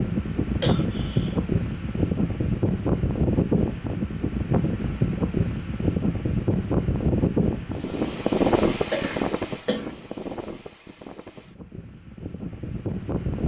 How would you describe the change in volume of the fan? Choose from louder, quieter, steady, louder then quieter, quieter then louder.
quieter.